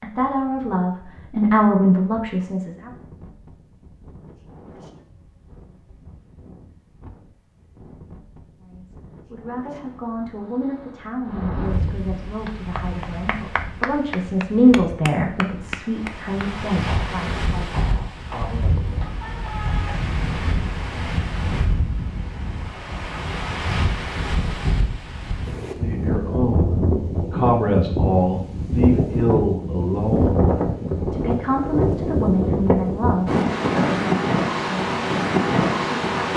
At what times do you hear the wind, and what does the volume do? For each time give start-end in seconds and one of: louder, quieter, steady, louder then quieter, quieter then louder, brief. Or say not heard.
0.1-36.3 louder.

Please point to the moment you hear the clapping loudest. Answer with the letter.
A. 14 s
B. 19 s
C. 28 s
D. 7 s
A.